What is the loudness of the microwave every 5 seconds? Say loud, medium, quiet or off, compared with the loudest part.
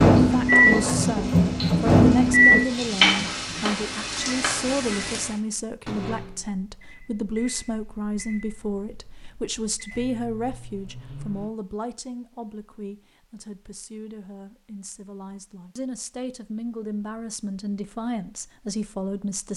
loud, quiet, quiet, off.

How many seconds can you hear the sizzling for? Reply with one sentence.
The sizzling can be heard for 5 seconds in total.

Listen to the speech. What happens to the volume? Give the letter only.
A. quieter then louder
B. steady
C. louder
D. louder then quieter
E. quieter
A.